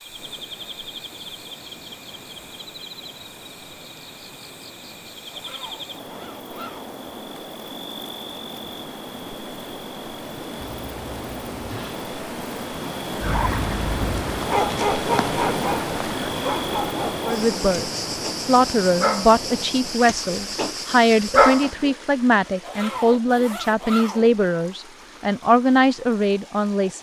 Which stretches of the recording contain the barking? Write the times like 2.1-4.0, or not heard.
13.2-21.9.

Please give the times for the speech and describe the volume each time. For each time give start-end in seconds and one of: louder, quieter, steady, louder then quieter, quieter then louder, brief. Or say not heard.
17.2-26.9 steady.